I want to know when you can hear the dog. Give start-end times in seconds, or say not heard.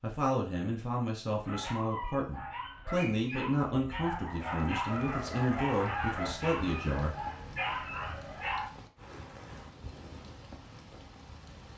1.4-8.7.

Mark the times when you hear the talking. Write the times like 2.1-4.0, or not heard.
0.0-7.2.